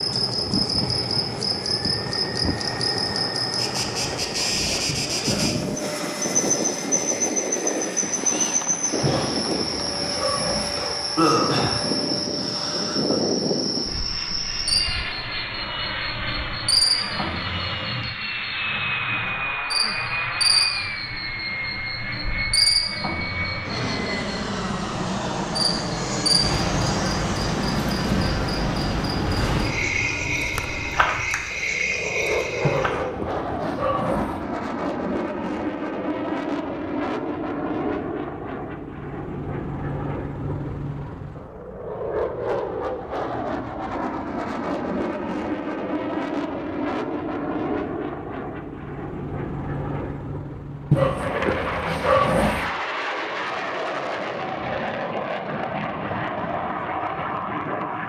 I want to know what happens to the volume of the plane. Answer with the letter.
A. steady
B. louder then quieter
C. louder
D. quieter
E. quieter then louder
A.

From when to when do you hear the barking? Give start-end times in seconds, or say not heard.
9.0-10.9, 32.6-34.5, 50.9-52.8.